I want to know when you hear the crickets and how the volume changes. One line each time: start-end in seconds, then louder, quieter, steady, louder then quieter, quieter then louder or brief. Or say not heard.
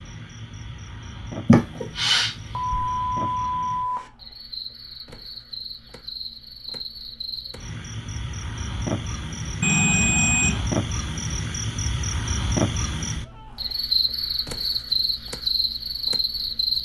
0.0-16.8 louder.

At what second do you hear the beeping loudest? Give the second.
10 s.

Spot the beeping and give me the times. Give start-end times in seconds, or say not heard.
2.5-4.1, 9.6-10.7.